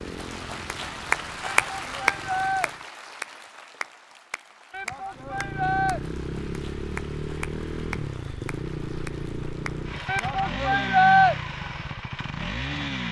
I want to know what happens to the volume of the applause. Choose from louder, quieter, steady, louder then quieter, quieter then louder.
quieter.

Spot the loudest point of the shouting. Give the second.
11 s.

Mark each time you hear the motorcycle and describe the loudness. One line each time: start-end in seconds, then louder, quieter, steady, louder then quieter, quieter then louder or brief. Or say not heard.
0.0-2.9 brief
5.1-13.0 steady.